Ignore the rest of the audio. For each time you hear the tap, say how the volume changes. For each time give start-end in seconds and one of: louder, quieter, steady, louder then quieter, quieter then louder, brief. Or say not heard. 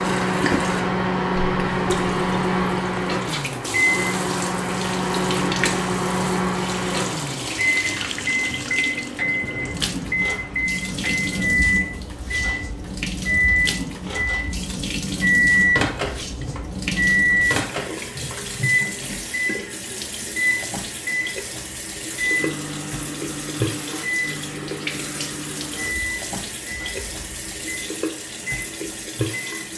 0.0-29.7 steady.